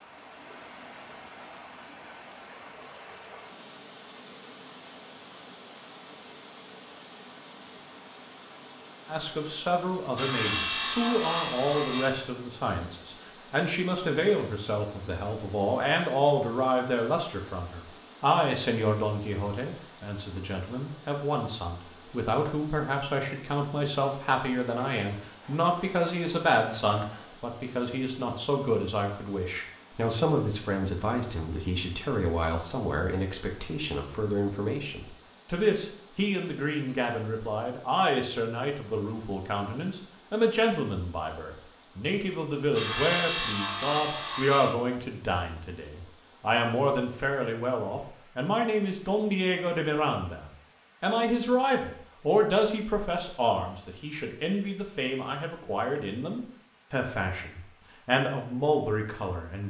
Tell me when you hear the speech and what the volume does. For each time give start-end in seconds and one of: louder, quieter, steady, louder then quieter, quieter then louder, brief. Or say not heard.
9.1-59.6 steady.